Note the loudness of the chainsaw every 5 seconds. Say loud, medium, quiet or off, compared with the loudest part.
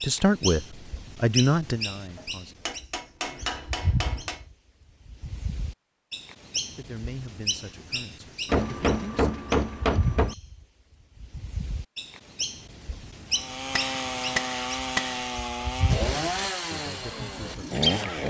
off, off, loud, loud.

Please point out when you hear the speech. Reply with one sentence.
You can hear the speech from 0.0 to 2.5 s, from 6.8 to 9.3 s and from 16.7 to 18.2 s.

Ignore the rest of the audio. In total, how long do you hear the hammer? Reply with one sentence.
You can hear the hammer for 6 seconds altogether.